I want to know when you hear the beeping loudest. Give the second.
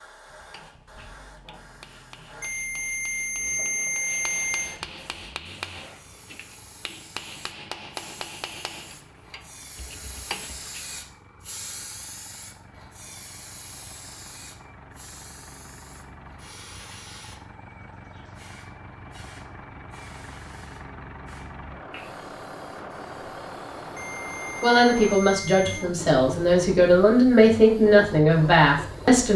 4 s.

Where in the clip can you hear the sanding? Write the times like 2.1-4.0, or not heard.
not heard.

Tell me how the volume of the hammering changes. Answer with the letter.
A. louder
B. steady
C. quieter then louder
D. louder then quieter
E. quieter
A.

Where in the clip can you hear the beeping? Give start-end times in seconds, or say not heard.
2.4-4.8, 23.9-25.9.